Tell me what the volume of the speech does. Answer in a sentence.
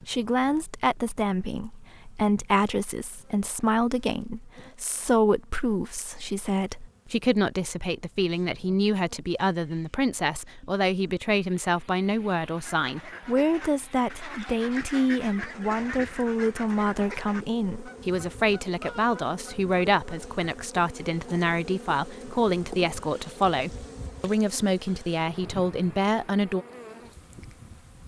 The loudness of the speech stays about the same.